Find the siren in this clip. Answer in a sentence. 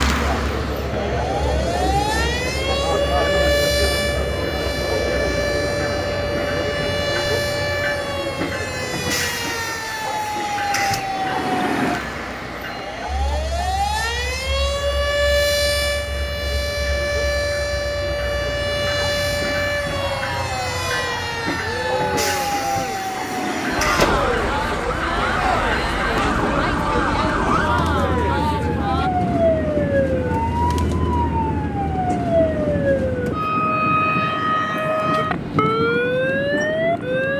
The siren can be heard from 0.0 to 37.3 s.